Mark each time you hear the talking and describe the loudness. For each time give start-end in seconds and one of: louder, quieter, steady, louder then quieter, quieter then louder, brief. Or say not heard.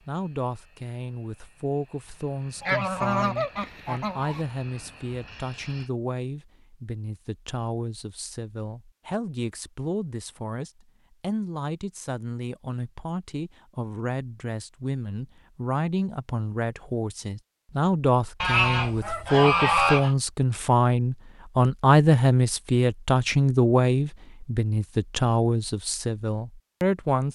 0.1-27.2 louder.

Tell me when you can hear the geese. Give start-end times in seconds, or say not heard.
2.6-4.5, 18.4-20.1.